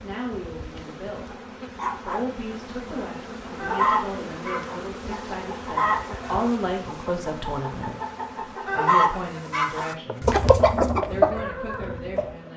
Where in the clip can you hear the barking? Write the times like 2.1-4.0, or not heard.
1.3-2.3.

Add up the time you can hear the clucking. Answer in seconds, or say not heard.
9 s.